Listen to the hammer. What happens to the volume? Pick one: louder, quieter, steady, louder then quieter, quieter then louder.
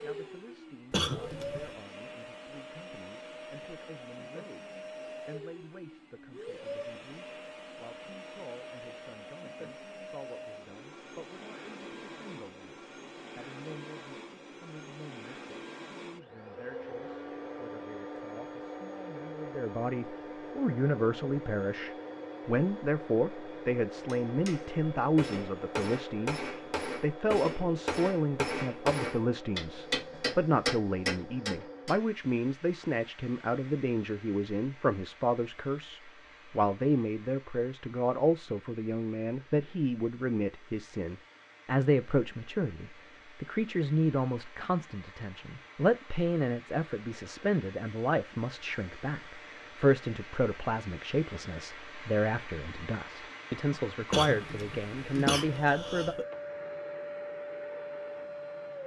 louder.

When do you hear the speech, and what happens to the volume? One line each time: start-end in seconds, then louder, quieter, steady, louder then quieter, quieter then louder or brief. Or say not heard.
0.0-56.1 louder.